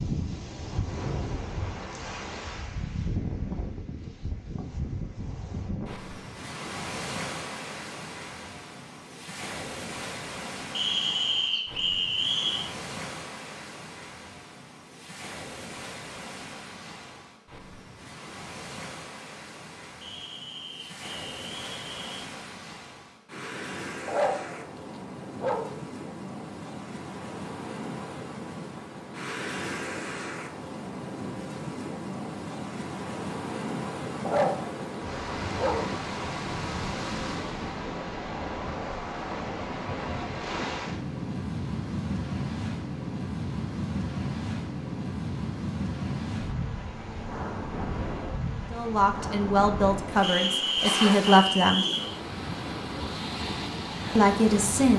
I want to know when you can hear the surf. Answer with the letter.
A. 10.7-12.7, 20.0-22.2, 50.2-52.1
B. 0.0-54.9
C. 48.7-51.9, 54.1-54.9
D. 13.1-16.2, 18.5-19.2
B.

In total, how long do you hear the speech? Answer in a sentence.
The speech can be heard for 4 seconds in total.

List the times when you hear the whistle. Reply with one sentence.
You can hear the whistle from 10.7 to 12.7 s, from 20.0 to 22.2 s and from 50.2 to 52.1 s.